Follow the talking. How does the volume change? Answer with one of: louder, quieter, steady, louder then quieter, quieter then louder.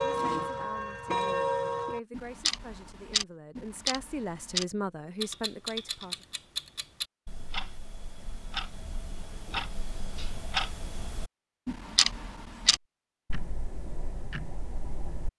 louder.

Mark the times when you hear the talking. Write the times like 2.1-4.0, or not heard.
0.1-6.2.